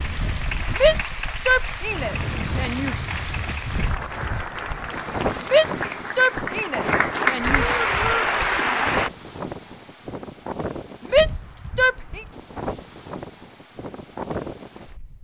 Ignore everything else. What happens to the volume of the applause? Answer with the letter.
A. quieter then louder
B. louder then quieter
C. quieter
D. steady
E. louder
E.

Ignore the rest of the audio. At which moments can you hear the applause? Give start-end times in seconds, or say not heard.
0.0-9.1.